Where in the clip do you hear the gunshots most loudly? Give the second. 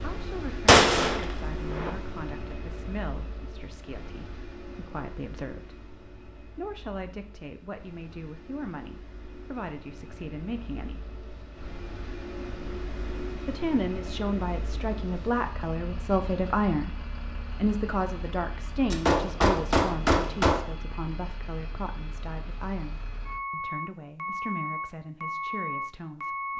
1 s.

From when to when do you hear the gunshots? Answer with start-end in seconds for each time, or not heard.
0.7-1.9, 18.9-20.6.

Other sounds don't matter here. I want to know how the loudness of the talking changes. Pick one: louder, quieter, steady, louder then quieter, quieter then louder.
louder then quieter.